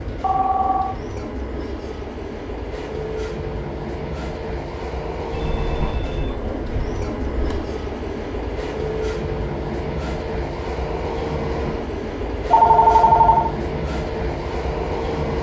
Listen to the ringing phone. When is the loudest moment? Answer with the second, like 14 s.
13 s.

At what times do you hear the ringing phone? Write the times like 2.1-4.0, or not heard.
0.2-0.9, 5.3-7.5, 12.5-13.5.